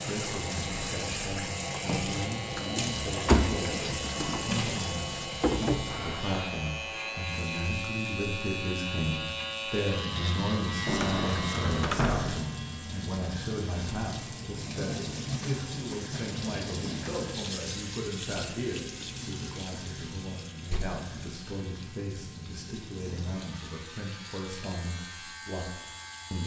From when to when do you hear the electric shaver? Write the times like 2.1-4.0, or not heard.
0.0-26.4.